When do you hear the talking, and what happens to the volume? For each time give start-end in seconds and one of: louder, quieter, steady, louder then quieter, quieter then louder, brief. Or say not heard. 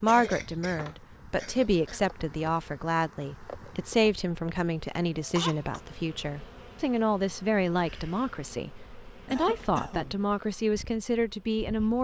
0.0-11.9 steady.